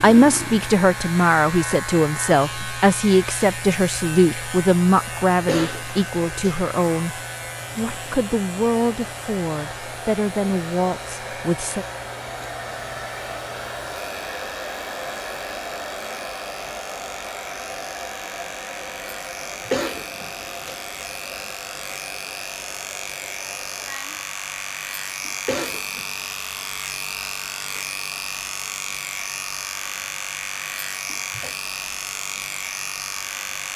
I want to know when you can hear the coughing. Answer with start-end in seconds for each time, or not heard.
5.5-6.6, 19.7-20.8, 25.4-26.1.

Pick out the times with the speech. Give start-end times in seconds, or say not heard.
0.0-11.8.